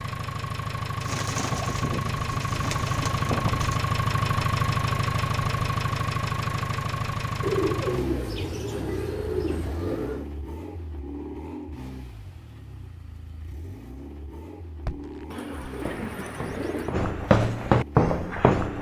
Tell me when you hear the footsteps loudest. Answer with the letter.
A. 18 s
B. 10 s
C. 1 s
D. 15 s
A.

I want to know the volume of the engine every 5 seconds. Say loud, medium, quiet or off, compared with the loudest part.
loud, loud, quiet, quiet.